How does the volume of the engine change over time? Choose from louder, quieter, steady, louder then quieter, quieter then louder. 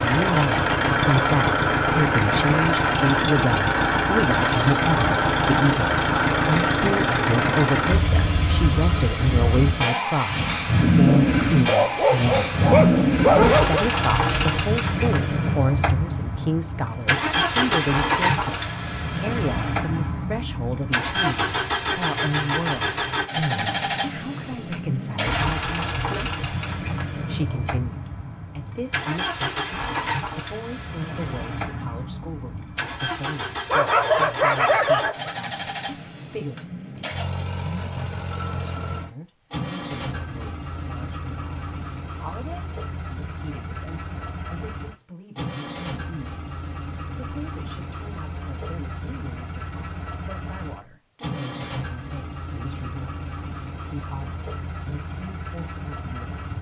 quieter.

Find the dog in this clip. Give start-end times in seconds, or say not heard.
11.7-13.8, 33.7-35.4.